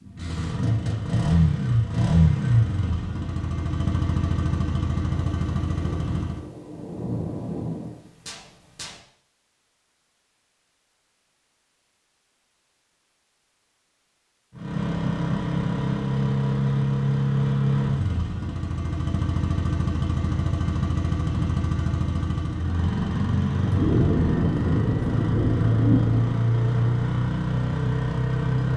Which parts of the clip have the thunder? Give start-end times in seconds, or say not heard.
5.3-9.0, 23.6-26.4.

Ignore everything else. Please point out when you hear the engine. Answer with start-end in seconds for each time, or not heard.
0.0-6.5, 14.6-28.7.